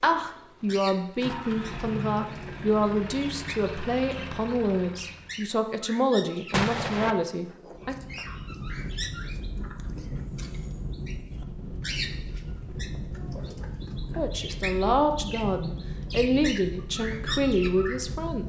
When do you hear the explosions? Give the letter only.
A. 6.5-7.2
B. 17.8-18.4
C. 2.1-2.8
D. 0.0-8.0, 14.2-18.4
A.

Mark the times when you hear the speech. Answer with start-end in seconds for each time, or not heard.
0.0-8.0, 14.2-18.4.